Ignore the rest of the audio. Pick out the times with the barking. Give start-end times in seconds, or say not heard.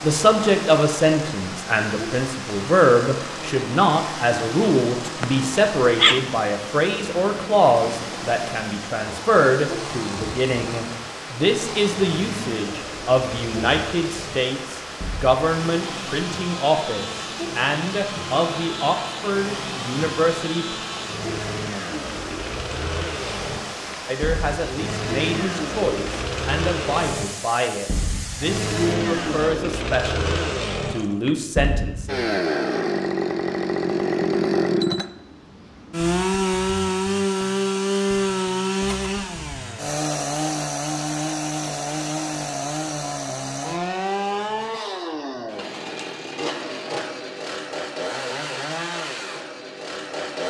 5.0-6.5.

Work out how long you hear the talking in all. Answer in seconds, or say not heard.
29 s.